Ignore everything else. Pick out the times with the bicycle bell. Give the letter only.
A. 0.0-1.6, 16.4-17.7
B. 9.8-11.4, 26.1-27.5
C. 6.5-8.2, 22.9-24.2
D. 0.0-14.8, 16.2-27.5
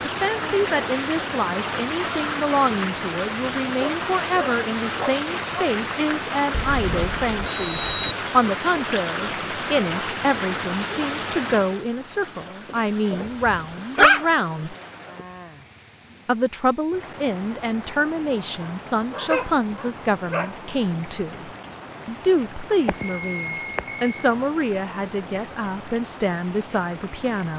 C.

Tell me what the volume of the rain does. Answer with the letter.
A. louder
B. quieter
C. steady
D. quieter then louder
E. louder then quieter
B.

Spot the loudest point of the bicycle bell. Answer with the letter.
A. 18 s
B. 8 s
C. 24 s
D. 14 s
B.